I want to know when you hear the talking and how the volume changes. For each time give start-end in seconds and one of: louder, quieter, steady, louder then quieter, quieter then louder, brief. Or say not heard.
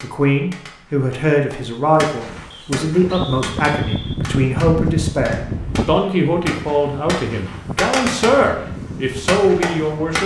0.0-10.2 steady.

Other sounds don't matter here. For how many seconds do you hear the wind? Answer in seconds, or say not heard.
7 s.